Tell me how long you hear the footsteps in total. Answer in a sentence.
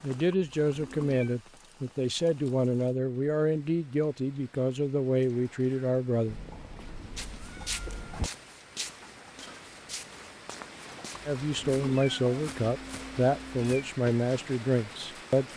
You can hear the footsteps for 7 seconds altogether.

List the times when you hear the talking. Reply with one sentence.
You can hear the talking from 0.0 to 6.3 s and from 11.2 to 15.5 s.